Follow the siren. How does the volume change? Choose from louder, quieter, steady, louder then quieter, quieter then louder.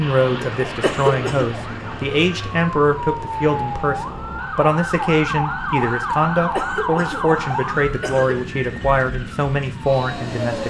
louder then quieter.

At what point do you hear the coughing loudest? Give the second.
1 s.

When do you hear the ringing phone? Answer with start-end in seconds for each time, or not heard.
not heard.